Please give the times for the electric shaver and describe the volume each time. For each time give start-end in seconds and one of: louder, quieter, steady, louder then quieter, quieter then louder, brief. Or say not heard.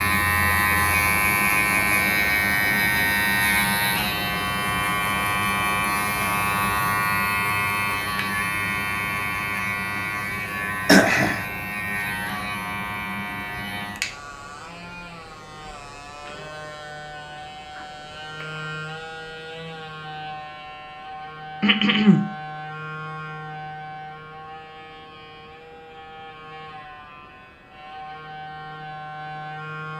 0.0-29.9 quieter.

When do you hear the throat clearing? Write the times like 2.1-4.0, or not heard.
10.8-11.4, 21.6-22.3.